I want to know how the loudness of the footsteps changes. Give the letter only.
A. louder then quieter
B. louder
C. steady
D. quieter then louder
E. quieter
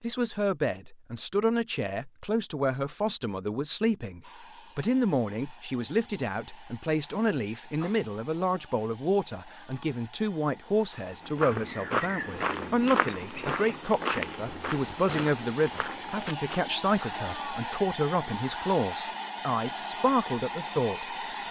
E.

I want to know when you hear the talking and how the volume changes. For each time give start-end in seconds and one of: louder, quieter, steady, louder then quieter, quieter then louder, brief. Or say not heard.
0.0-21.2 steady.